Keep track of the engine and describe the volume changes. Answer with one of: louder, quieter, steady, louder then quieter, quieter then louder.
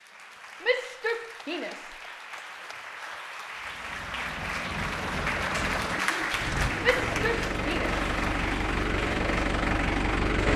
louder.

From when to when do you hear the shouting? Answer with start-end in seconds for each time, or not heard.
0.6-1.9, 6.8-7.9.